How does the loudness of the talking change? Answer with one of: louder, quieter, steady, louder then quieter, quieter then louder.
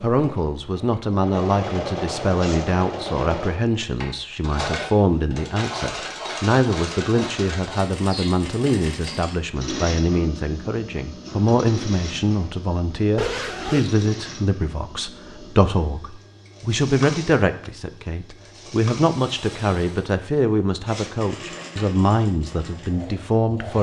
steady.